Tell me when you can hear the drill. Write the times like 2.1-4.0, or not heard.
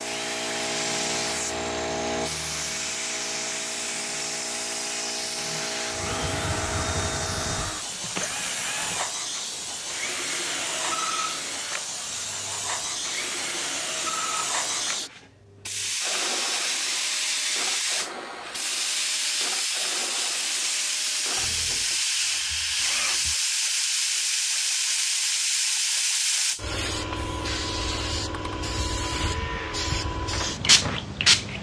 0.0-31.5.